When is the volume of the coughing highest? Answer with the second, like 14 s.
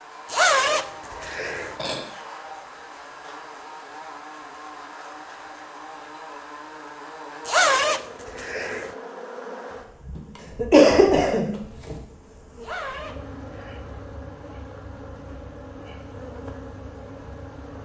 11 s.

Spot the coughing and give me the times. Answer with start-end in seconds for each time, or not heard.
1.2-2.0, 10.2-11.9.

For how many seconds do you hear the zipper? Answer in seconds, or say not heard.
4 s.